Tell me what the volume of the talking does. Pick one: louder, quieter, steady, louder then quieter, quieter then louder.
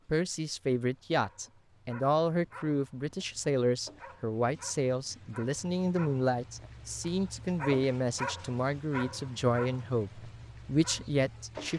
steady.